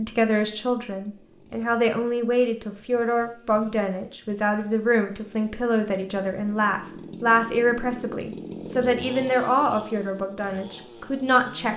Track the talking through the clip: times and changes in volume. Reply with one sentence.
The talking can be heard from 0.0 to 11.7 s, at a steady volume.